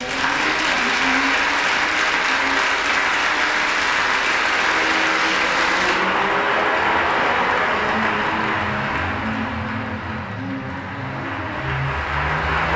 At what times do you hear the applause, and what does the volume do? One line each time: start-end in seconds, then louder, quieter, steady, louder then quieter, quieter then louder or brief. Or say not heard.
0.0-12.7 quieter.